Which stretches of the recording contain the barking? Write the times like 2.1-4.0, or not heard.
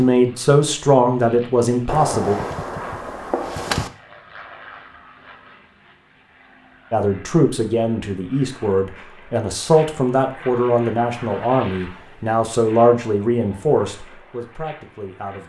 not heard.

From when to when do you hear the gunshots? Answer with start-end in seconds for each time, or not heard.
1.9-3.9.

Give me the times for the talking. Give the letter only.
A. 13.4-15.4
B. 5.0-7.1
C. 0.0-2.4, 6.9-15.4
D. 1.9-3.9
C.